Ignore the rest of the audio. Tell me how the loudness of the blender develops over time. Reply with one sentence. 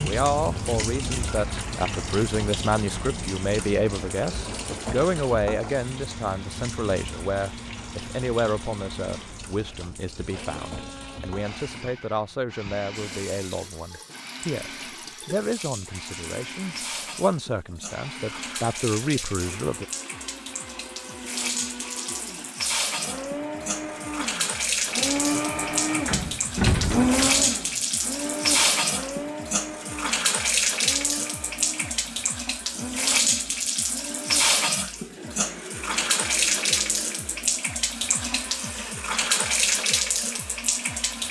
The loudness of the blender goes up, then down.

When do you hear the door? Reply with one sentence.
The door can be heard from 26.1 to 27.4 s.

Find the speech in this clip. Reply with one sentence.
The speech can be heard from 0.0 to 19.9 s.